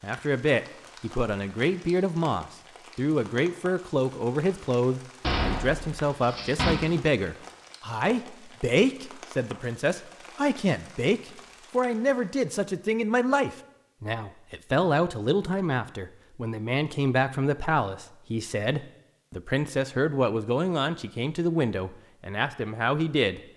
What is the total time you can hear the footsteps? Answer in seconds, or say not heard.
not heard.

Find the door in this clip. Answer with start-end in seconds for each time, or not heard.
5.2-6.8.